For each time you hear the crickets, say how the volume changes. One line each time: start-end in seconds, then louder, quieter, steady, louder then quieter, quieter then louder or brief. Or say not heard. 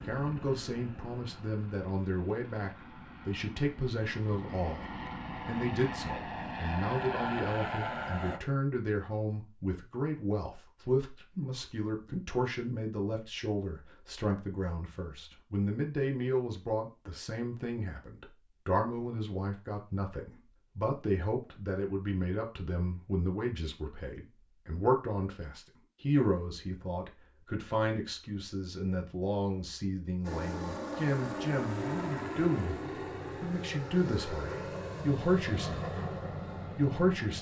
not heard.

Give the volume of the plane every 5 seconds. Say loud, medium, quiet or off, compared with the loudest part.
medium, loud, off, off, off, off, loud, loud.